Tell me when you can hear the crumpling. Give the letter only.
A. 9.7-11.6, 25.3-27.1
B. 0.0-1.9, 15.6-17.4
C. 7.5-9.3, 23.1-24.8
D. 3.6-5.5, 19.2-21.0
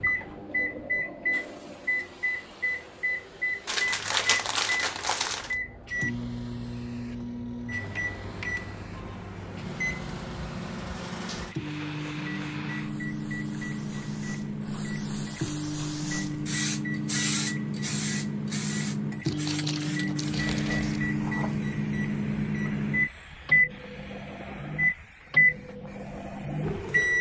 D.